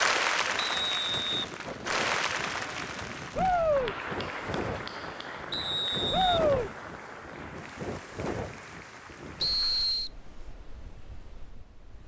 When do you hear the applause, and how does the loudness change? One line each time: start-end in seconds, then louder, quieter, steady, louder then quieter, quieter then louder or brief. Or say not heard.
0.0-9.9 quieter.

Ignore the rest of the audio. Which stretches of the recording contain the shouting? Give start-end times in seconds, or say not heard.
3.4-4.0, 6.1-6.7.